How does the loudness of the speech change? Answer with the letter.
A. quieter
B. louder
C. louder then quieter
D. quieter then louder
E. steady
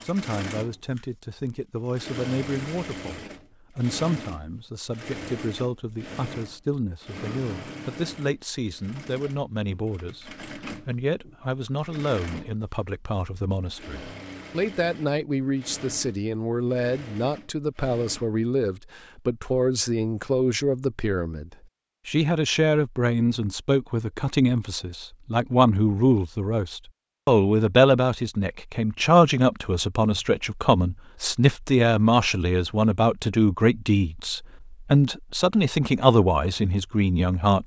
B.